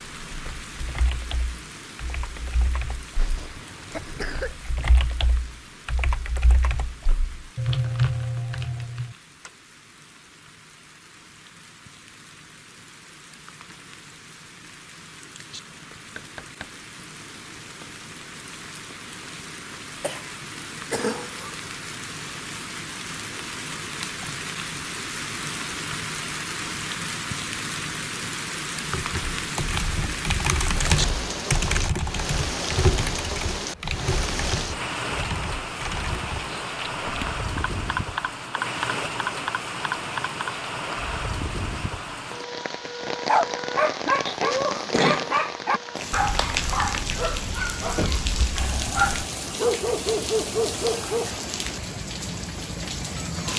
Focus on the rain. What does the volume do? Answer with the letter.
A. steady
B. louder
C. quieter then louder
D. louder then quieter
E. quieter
B.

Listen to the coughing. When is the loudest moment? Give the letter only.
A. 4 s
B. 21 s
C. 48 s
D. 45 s
D.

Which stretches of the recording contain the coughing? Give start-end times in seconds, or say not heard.
3.1-4.6, 20.0-21.6, 44.2-45.4.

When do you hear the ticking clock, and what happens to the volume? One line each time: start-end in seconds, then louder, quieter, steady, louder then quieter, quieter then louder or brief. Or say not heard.
not heard.